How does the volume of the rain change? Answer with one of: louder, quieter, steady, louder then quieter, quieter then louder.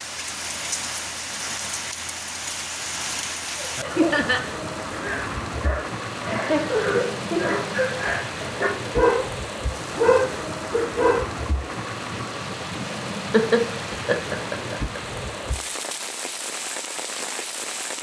steady.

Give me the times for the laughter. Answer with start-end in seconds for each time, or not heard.
4.0-4.4, 6.3-7.6, 13.3-15.0.